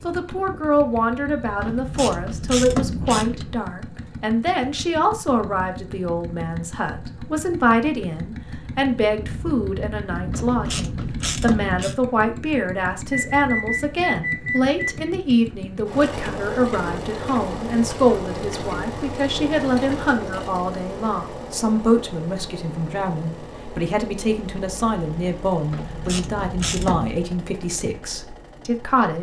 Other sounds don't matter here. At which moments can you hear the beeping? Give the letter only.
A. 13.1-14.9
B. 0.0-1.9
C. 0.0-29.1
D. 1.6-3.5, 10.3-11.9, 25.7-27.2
A.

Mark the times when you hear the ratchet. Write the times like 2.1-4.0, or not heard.
1.6-3.5, 10.3-11.9, 25.7-27.2.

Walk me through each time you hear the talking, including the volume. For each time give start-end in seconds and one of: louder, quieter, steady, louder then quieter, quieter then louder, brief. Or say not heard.
0.0-29.1 steady.